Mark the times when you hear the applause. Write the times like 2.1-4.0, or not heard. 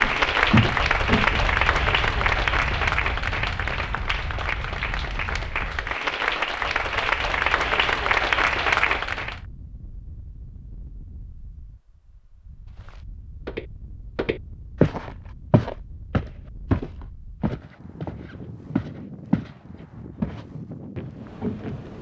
0.0-9.4.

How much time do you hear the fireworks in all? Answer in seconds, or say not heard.
not heard.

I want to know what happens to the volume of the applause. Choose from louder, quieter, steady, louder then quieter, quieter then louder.
quieter then louder.